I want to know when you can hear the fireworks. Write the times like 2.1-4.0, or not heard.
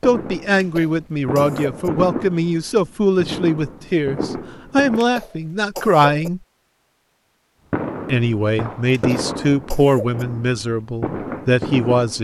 0.0-5.0, 7.7-12.1.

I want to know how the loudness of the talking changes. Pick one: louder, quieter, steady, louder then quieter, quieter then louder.
steady.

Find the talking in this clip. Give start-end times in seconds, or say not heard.
0.0-6.4, 8.1-12.1.